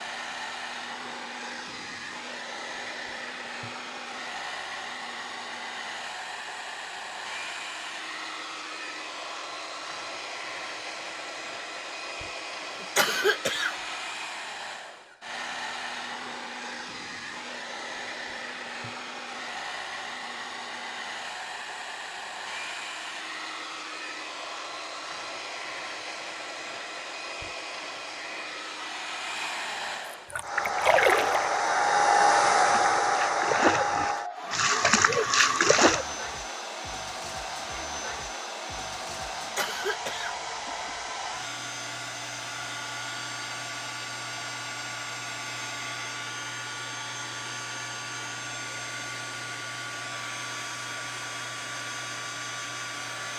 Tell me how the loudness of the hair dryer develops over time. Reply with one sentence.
The volume of the hair dryer goes up, then down.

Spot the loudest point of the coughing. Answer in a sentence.
The loudest moment of the coughing is at 13 seconds.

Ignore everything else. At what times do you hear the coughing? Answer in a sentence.
The coughing can be heard from 12.8 to 13.8 s and from 39.4 to 41.1 s.